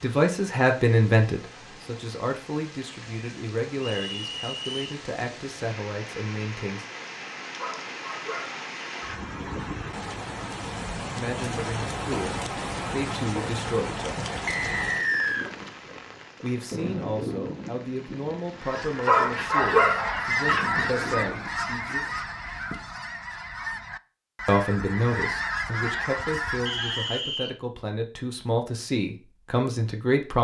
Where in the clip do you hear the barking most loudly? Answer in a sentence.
The volume of the barking peaks at 20 seconds.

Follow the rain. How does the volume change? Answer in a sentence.
The loudness of the rain goes up, then down.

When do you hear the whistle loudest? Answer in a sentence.
The volume of the whistle peaks at 15 seconds.